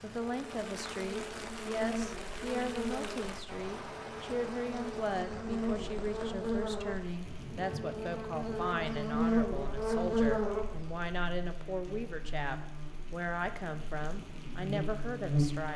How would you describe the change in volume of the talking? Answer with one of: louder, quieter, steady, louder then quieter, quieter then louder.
steady.